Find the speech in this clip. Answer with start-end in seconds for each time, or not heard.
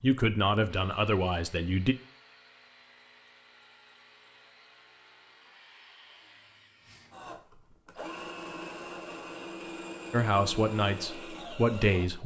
0.0-1.9, 10.1-12.2.